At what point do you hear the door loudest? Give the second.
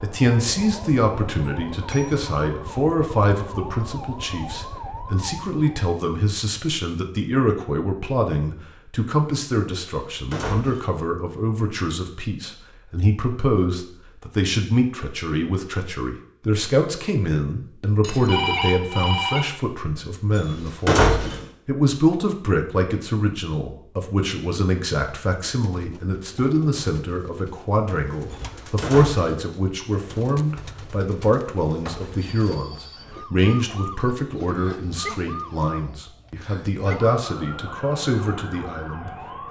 21 s.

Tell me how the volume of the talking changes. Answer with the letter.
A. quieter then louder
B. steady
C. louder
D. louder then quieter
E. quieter
B.